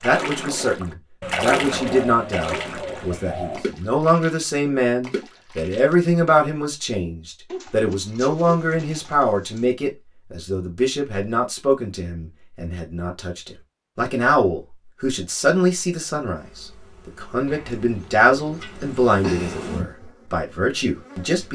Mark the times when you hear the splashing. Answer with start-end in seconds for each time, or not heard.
0.0-6.3.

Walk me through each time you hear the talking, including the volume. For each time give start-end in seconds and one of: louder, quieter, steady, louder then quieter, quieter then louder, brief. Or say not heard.
0.0-21.4 steady.